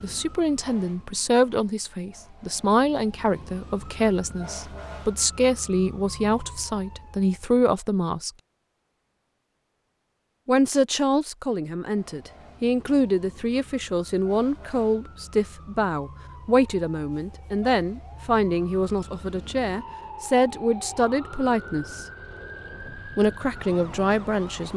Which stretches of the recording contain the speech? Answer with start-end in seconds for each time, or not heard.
0.0-8.3, 10.4-22.1, 23.1-24.7.